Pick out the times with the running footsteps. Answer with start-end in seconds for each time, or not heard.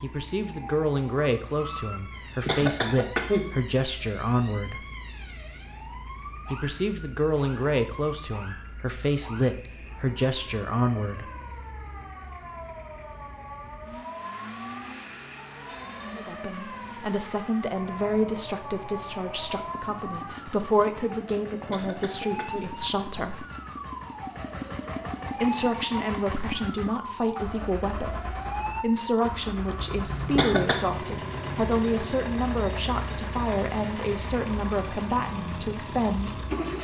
not heard.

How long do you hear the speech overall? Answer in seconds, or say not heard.
28 s.